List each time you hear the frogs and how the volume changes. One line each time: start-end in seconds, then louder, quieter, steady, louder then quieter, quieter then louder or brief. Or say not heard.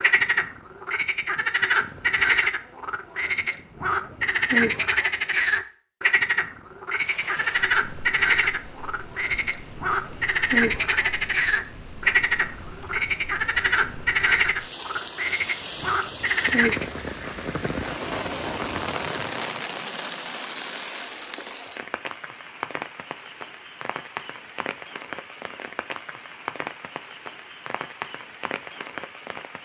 0.0-16.9 steady.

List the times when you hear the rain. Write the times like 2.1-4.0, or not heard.
7.0-29.6.